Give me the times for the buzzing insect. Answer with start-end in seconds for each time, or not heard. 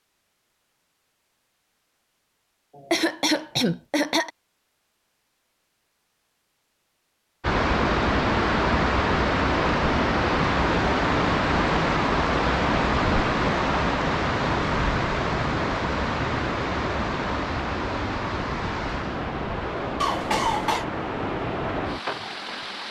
not heard.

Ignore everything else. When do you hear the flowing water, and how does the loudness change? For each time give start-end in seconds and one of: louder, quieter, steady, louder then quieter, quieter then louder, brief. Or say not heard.
7.4-22.8 quieter.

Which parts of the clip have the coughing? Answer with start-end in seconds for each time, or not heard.
2.8-4.3, 20.0-20.9.